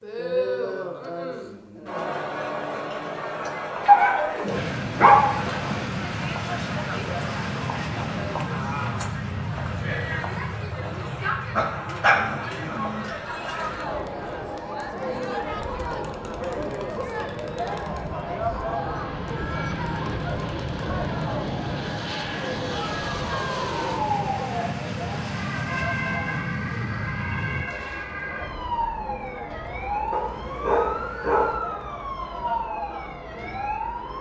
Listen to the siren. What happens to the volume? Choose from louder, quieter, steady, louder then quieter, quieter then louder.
steady.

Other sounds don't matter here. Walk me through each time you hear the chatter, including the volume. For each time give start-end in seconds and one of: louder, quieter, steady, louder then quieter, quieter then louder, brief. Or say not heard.
0.0-34.1 quieter.